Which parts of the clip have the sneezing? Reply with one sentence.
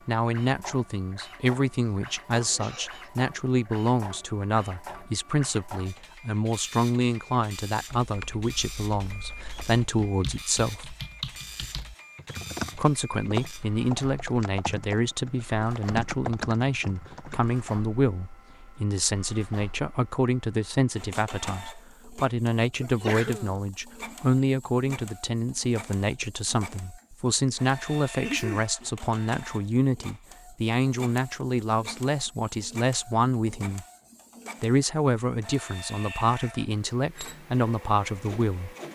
The sneezing can be heard from 1.9 to 3.1 s, from 22.8 to 23.6 s and from 28.2 to 28.6 s.